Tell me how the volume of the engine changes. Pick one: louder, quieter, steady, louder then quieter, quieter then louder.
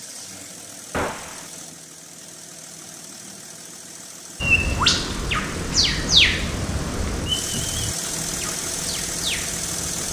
louder.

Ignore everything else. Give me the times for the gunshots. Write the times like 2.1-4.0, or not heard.
0.9-1.4.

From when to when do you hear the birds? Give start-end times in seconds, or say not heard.
4.4-10.0.